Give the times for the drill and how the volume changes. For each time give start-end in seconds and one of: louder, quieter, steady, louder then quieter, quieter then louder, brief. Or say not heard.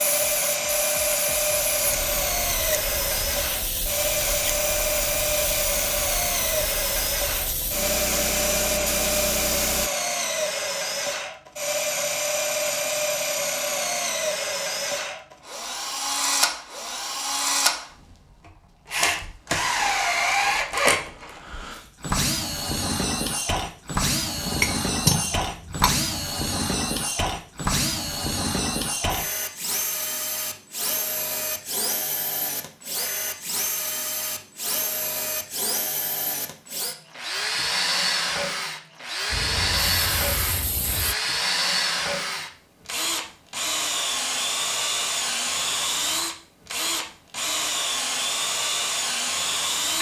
0.0-49.9 steady.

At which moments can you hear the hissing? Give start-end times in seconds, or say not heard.
0.0-9.9, 39.3-41.1.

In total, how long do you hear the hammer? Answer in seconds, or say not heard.
2 s.